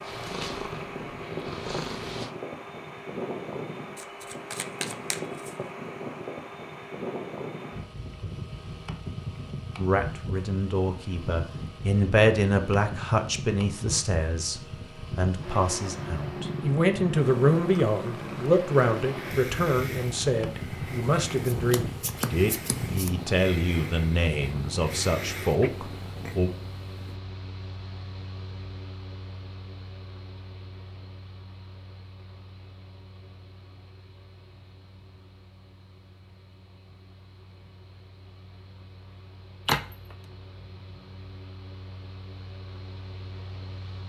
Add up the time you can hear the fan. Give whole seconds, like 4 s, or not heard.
44 s.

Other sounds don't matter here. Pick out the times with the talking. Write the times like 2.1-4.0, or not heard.
9.8-26.5.